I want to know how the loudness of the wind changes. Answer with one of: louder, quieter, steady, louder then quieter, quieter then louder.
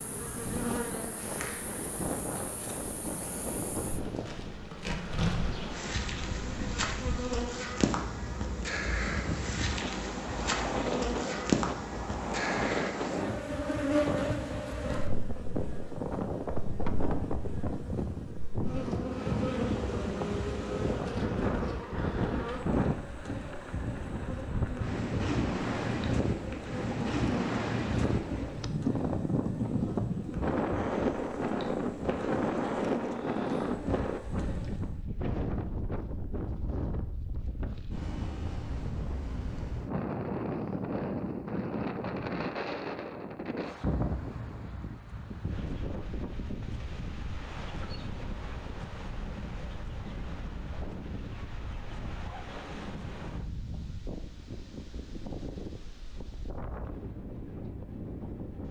louder then quieter.